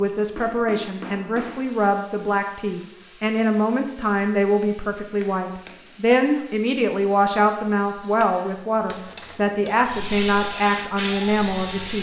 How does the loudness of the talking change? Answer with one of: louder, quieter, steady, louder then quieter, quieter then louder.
steady.